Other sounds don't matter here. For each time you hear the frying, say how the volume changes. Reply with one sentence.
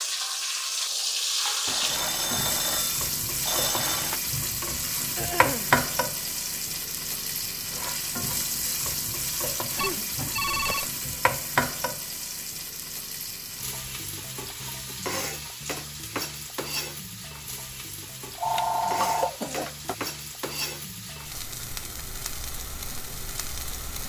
You can hear the frying from 0.0 to 24.0 s, getting quieter.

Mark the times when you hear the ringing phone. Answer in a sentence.
The ringing phone can be heard from 1.6 to 4.2 s, from 9.8 to 10.9 s and from 18.4 to 19.3 s.